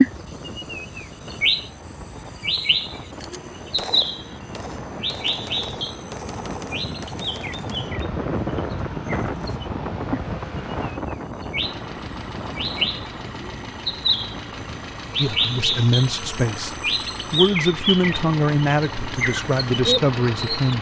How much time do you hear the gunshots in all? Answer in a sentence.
The gunshots can be heard for 5 seconds in total.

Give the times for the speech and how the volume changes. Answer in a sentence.
The speech can be heard from 15.2 to 20.7 s, at a steady volume.